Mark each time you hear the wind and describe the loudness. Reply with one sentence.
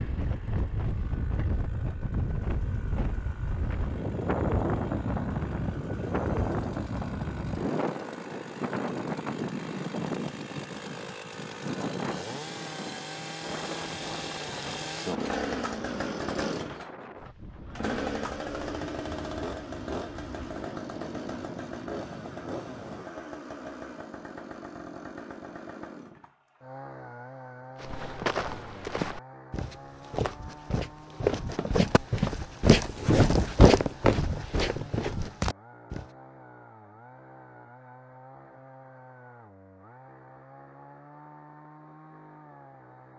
You can hear the wind from 0.0 to 23.1 s, getting quieter.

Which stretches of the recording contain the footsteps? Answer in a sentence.
The footsteps can be heard from 27.8 to 36.0 s.